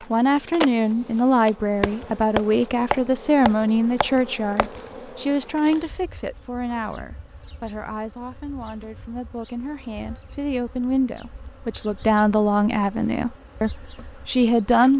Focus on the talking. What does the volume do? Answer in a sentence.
The volume of the talking goes down, then up.